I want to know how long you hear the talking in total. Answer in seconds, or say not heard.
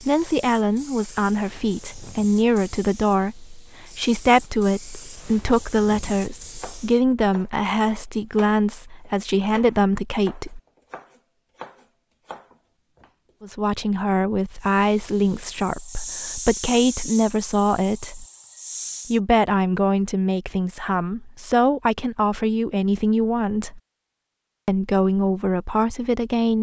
22 s.